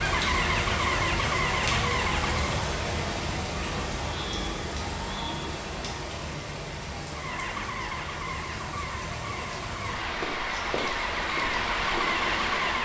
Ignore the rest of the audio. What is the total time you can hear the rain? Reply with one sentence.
You can hear the rain for 13 seconds altogether.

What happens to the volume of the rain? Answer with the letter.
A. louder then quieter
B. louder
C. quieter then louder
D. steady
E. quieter
C.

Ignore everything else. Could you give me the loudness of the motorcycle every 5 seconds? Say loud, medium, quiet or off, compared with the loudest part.
loud, medium, loud.